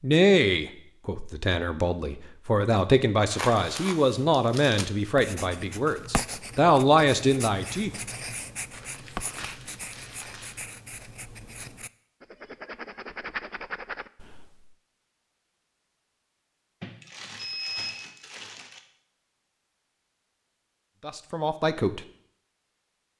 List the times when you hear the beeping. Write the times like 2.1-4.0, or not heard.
17.4-18.1.